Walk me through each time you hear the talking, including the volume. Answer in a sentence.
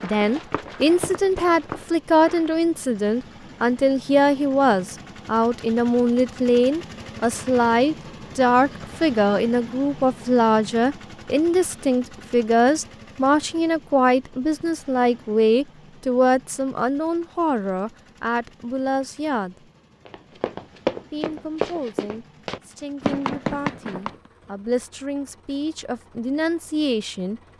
You can hear the talking from 0.0 to 19.6 s, at a steady volume; and from 21.1 to 27.4 s, getting louder.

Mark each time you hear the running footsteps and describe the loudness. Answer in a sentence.
You can hear the running footsteps briefly from 0.0 to 2.5 s; and from 20.1 to 24.1 s, getting quieter then louder.